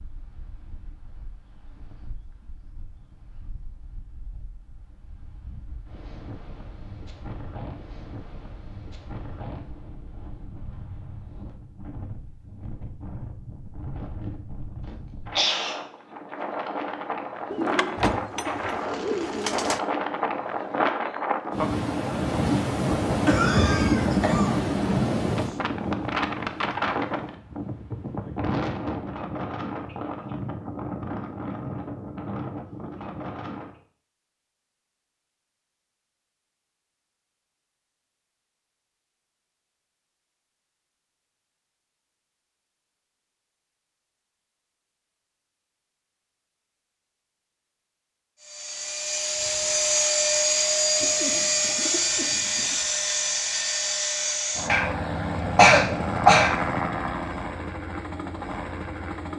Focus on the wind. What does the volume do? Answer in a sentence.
The volume of the wind goes up, then down.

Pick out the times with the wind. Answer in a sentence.
The wind can be heard from 0.0 to 33.8 s.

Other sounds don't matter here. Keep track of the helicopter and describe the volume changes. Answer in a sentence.
The volume of the helicopter goes down.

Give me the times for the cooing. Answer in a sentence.
You can hear the cooing from 17.5 to 19.8 s and from 51.0 to 52.8 s.